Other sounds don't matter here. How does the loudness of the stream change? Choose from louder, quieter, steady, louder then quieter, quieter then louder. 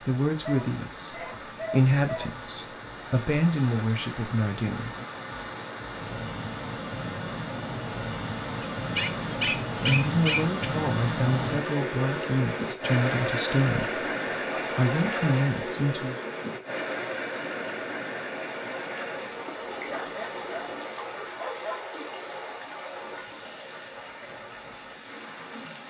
louder then quieter.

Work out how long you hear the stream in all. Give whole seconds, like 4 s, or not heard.
26 s.